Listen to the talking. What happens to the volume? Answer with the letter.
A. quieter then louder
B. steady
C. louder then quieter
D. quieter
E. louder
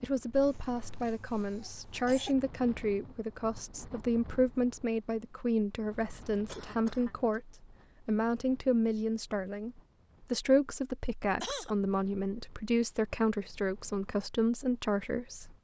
B.